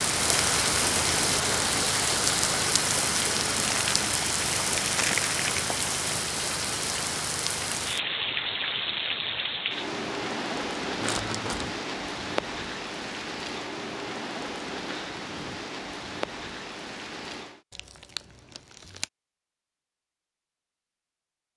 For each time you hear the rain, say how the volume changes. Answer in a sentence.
The rain can be heard from 0.0 to 17.6 s, getting quieter.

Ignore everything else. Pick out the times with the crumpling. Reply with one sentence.
You can hear the crumpling from 3.6 to 5.7 s, from 11.0 to 11.8 s and from 17.7 to 19.1 s.